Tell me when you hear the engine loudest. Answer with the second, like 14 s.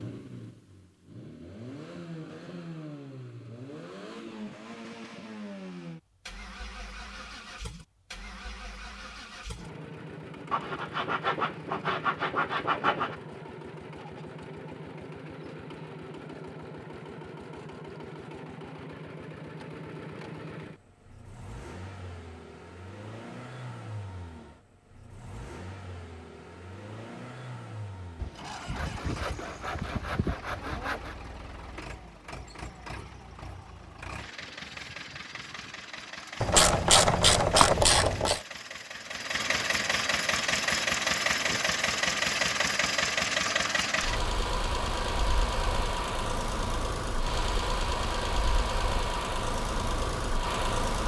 41 s.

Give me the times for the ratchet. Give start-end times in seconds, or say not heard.
36.4-38.4.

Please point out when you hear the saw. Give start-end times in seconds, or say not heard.
10.5-13.2, 28.1-31.1.